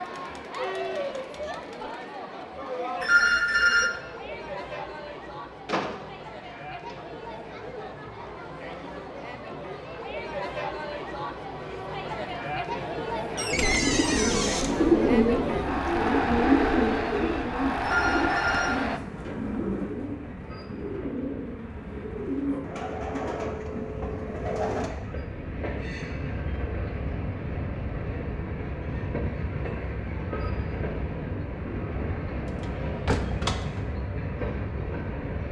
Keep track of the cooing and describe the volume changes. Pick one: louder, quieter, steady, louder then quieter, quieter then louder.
quieter.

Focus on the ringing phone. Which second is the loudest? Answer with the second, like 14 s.
3 s.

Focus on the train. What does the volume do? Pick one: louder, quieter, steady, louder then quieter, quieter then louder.
louder.